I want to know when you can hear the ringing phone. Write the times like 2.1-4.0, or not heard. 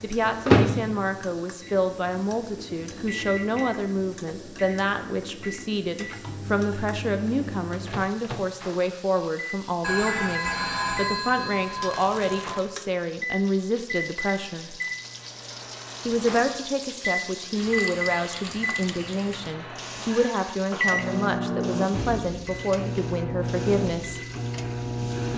9.8-12.6.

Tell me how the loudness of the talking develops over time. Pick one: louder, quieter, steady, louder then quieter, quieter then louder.
steady.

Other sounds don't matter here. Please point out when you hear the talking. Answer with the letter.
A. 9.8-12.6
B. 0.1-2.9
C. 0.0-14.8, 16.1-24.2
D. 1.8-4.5
C.